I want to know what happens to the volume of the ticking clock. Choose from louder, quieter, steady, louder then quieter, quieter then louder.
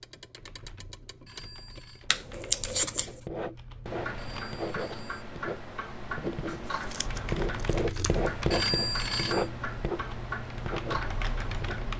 louder.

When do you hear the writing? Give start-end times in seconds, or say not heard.
3.0-11.8.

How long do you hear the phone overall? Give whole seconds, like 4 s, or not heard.
3 s.